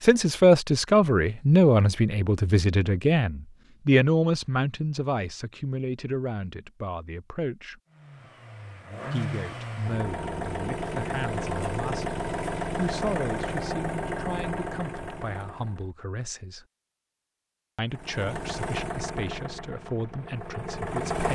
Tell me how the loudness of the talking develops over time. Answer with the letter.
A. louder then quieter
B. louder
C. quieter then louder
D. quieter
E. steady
D.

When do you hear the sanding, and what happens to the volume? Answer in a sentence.
You can't hear the sanding here.